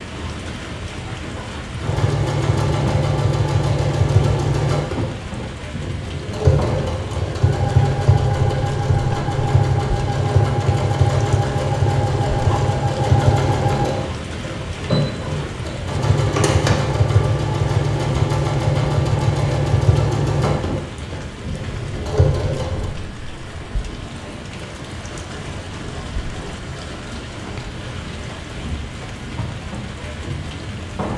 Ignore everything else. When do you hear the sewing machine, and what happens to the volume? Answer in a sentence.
The sewing machine can be heard from 1.8 to 22.9 s, at a steady volume.